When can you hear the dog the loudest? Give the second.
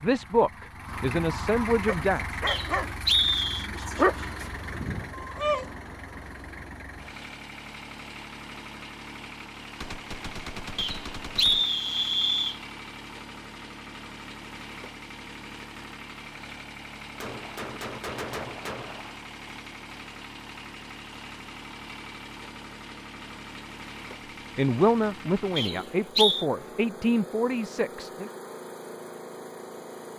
4 s.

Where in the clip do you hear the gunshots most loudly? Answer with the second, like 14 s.
18 s.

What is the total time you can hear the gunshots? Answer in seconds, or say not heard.
4 s.